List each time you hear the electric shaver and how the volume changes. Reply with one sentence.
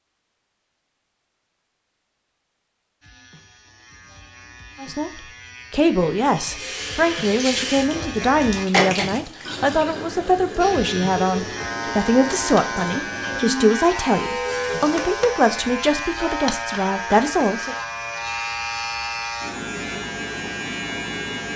You can hear the electric shaver from 3.0 to 8.7 s, getting louder; and from 10.6 to 21.5 s, at a steady volume.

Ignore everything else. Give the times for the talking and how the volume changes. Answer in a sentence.
The talking can be heard from 4.8 to 17.8 s, at a steady volume.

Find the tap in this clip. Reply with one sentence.
You can hear the tap from 6.5 to 15.4 s.